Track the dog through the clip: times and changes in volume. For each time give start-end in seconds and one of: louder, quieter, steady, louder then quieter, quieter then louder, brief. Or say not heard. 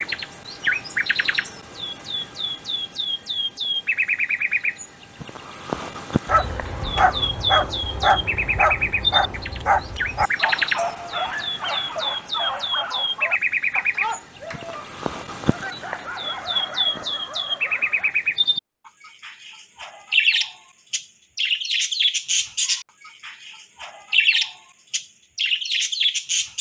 6.2-18.1 quieter.